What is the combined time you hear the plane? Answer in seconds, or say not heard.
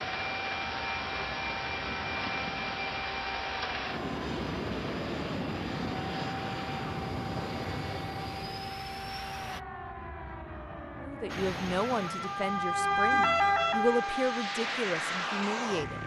14 s.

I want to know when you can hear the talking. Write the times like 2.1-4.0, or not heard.
11.0-16.0.